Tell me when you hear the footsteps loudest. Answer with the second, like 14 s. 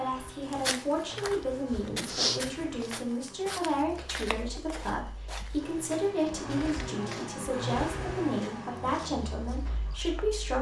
2 s.